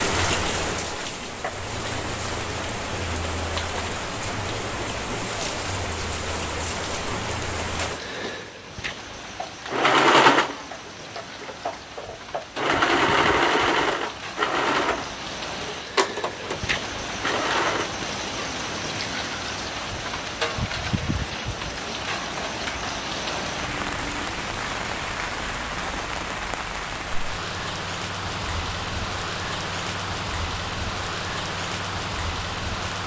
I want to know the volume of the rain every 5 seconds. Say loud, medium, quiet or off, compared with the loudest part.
loud, loud, medium, loud, loud, loud, loud.